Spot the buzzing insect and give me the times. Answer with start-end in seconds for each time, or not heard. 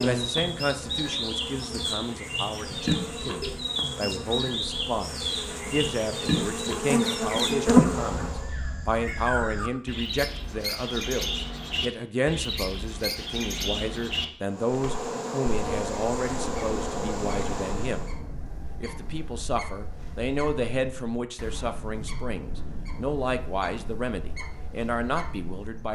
0.0-8.6, 14.5-18.1.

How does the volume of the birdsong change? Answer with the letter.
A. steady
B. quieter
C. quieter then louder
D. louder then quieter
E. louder
B.